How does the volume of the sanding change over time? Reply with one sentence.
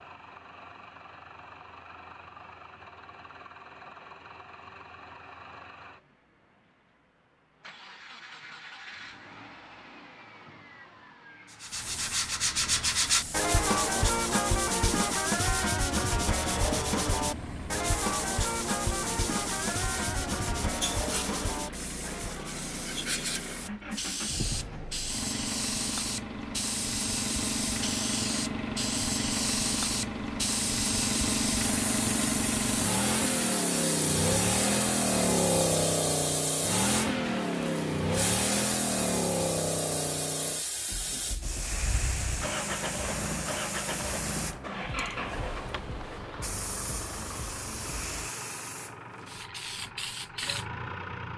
The volume of the sanding goes down.